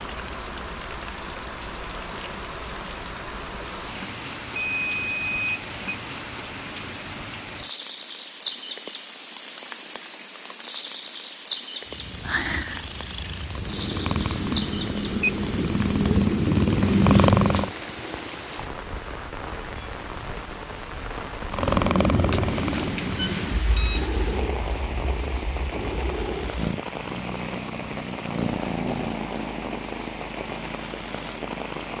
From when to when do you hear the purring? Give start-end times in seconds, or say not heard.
11.8-17.8, 21.5-31.9.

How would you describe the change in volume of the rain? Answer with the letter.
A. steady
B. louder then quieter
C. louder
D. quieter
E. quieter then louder
A.